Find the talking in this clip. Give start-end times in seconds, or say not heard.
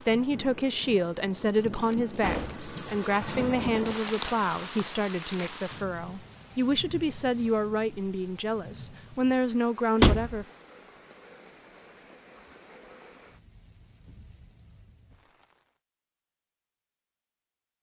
0.1-10.4.